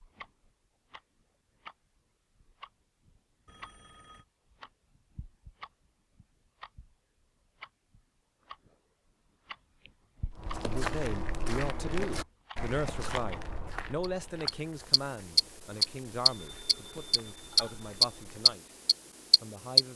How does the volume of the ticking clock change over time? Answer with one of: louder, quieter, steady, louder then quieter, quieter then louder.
louder.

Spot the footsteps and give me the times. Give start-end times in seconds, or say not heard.
10.3-18.6.